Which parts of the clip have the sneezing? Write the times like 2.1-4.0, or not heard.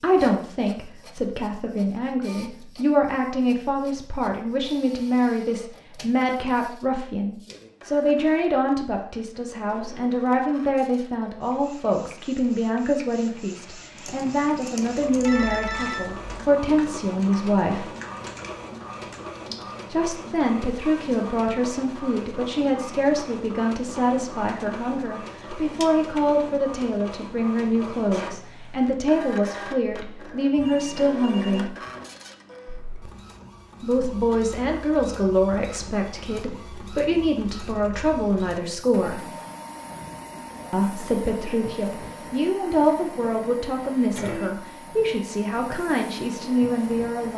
not heard.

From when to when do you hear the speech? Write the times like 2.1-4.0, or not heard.
0.0-17.9, 19.9-31.8, 33.8-39.3, 40.7-47.3.